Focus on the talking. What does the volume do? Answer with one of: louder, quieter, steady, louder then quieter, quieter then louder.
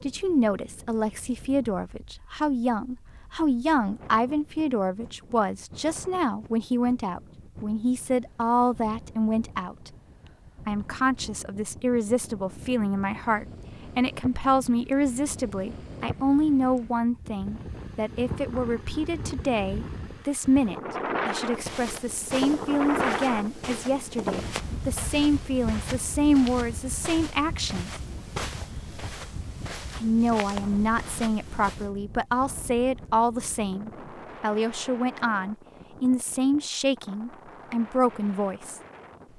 steady.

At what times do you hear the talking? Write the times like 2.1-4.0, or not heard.
0.0-9.9, 10.7-27.9, 29.9-38.8.